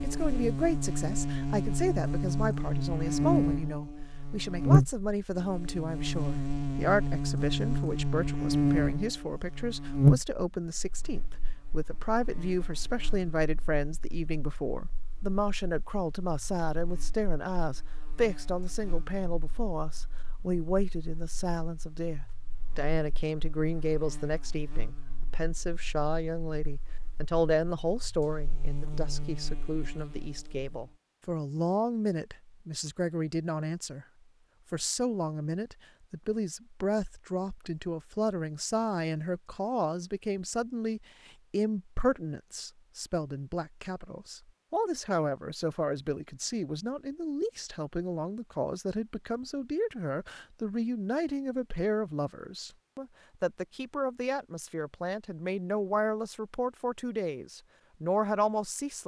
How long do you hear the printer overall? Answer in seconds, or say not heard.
not heard.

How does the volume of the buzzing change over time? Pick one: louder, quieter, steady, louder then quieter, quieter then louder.
quieter then louder.